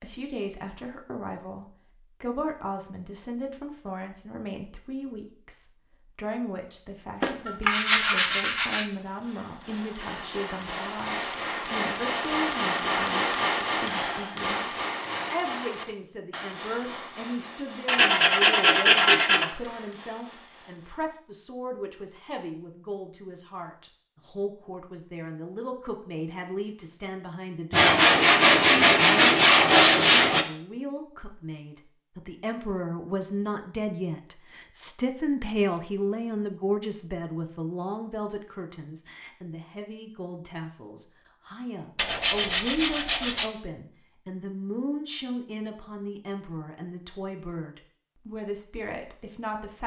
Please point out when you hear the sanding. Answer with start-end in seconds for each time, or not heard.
7.2-8.8, 17.9-19.5, 27.7-30.4, 42.0-43.5.